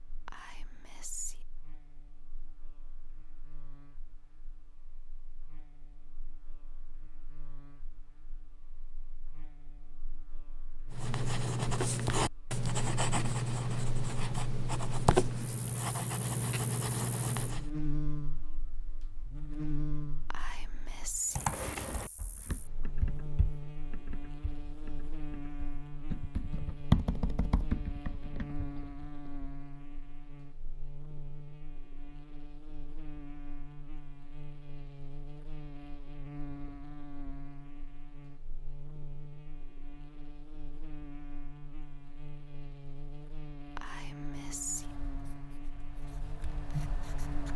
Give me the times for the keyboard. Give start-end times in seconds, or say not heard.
21.4-29.3.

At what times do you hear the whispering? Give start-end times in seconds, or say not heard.
0.2-1.4, 20.3-21.4, 43.8-44.9.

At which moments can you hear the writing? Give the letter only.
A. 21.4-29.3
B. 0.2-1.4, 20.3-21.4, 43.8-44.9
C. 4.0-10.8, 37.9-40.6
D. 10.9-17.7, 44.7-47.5
D.